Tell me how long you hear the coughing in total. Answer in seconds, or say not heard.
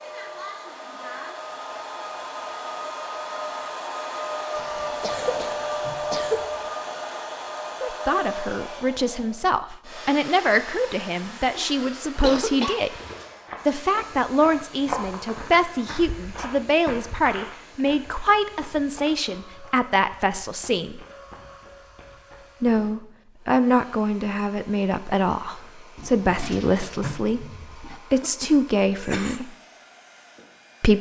4 s.